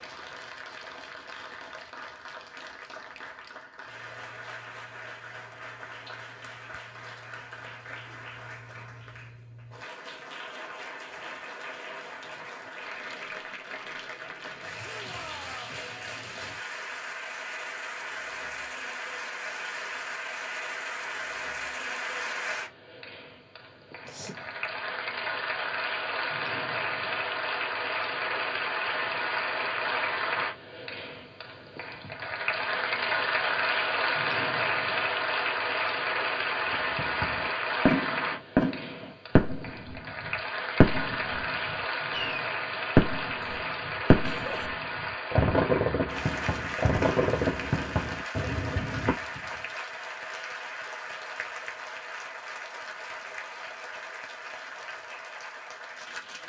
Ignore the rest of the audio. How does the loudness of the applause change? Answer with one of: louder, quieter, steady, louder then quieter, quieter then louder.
louder then quieter.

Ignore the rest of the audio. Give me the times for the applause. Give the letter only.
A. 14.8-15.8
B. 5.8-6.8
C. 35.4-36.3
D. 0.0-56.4
D.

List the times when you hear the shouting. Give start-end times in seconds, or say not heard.
14.8-15.8.